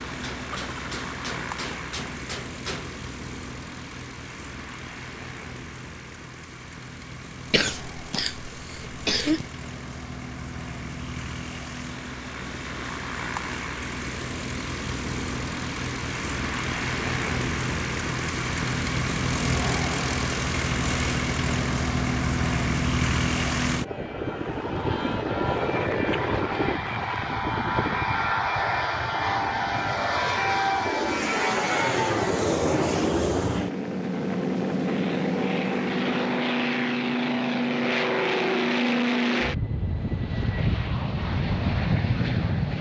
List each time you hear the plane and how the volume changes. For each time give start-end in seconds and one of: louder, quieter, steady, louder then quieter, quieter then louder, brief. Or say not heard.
0.0-42.7 louder.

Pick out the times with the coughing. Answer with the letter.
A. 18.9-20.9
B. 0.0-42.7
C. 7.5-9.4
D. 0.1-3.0
C.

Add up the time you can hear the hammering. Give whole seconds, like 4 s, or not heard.
3 s.